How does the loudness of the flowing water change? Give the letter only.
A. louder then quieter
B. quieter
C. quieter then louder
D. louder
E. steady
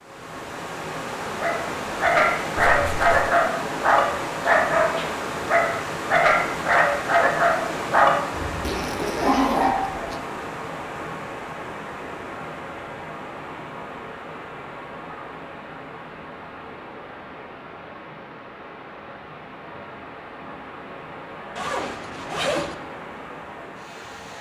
B.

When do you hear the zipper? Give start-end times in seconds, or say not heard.
2.6-3.3, 8.6-10.2, 21.6-22.8.